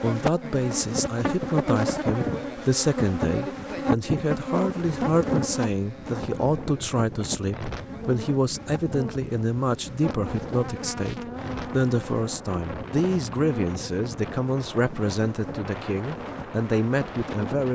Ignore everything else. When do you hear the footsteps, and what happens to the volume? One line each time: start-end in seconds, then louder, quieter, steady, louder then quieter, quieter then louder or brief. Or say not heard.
not heard.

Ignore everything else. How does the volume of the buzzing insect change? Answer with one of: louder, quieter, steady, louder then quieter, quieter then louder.
quieter.